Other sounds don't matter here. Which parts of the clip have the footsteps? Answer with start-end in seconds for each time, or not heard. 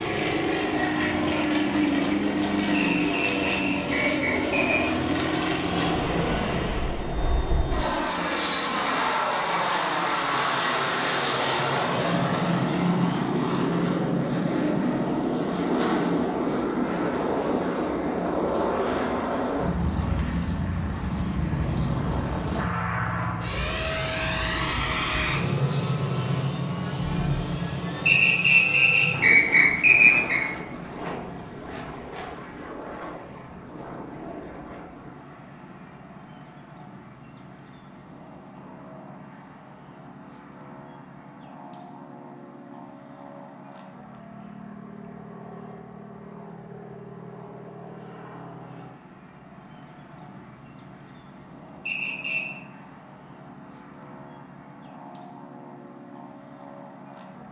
not heard.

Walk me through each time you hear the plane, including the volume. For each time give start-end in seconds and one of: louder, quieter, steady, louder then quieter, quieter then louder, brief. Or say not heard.
0.0-57.4 quieter.